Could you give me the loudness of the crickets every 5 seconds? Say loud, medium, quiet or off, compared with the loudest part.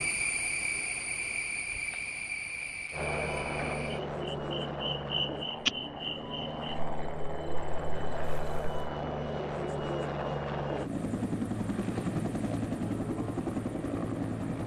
loud, loud, off.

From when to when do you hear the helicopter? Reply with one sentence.
You can hear the helicopter from 2.9 to 14.6 s.